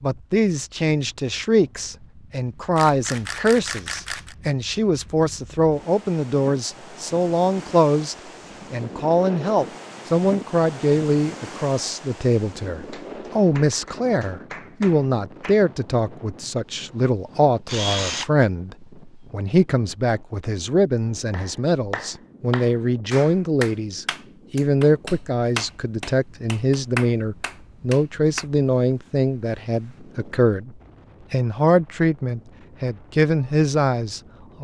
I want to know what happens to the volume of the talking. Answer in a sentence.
The loudness of the talking stays about the same.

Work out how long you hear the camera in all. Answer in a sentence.
The camera can be heard for 2 seconds in total.